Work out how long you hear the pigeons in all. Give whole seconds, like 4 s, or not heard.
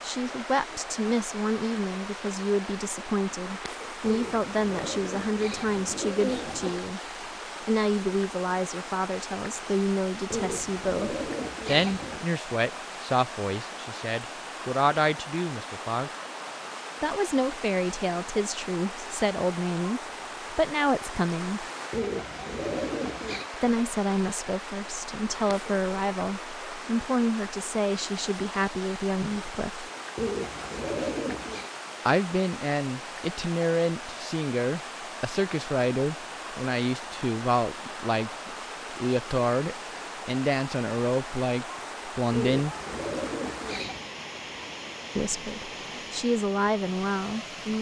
10 s.